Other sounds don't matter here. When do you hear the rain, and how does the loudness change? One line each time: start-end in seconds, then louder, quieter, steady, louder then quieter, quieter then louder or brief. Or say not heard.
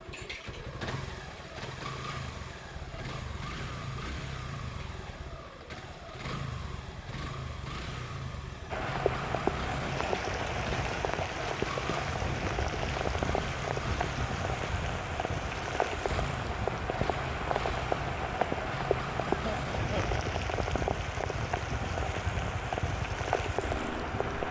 8.7-24.4 steady.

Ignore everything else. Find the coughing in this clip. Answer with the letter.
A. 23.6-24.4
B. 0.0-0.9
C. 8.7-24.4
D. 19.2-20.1
D.